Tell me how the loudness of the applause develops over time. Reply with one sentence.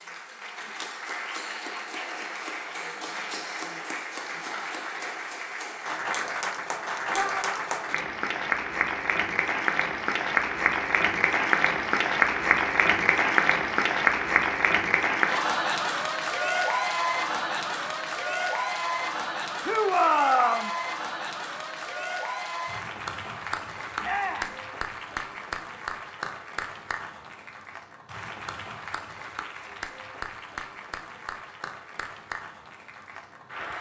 The volume of the applause goes up, then down.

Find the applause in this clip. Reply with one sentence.
You can hear the applause from 0.0 to 33.7 s.